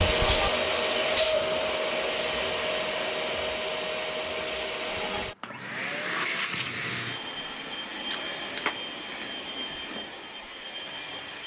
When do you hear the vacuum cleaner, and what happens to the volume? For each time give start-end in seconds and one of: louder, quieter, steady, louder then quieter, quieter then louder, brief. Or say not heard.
0.0-11.4 quieter.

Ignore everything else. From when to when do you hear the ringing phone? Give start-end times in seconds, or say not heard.
8.1-8.8.